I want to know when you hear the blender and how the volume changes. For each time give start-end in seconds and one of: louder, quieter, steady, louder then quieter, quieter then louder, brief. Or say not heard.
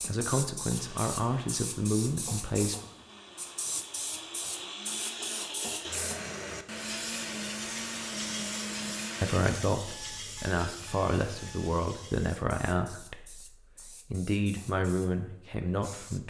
0.0-9.6 louder.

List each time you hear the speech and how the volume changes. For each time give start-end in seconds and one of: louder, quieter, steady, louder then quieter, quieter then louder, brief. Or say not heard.
0.1-2.8 brief
9.2-16.2 steady.